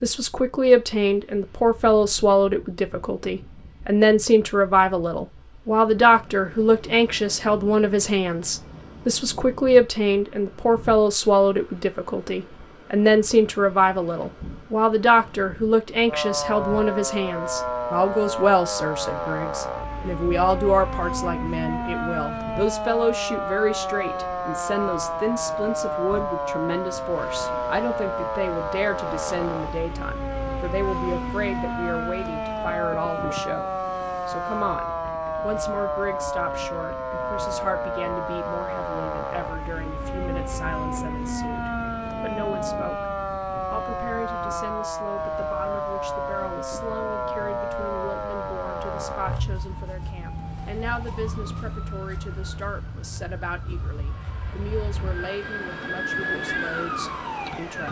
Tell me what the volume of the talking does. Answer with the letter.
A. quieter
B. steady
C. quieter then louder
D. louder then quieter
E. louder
A.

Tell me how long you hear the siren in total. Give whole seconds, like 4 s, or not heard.
42 s.